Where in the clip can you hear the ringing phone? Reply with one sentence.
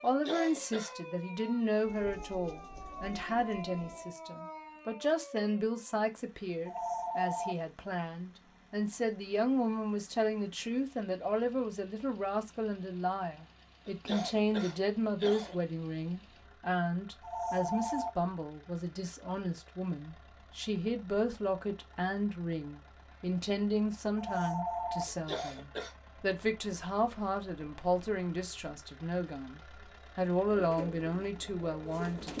You can hear the ringing phone from 6.7 to 7.5 s, from 17.2 to 18.1 s and from 24.1 to 25.1 s.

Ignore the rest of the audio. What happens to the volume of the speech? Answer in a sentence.
The volume of the speech stays about the same.